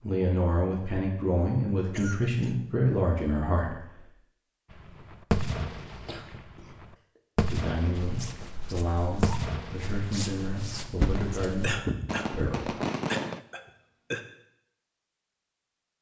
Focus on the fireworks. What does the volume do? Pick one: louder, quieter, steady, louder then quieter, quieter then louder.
steady.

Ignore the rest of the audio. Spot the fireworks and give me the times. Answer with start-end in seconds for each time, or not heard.
4.7-13.4.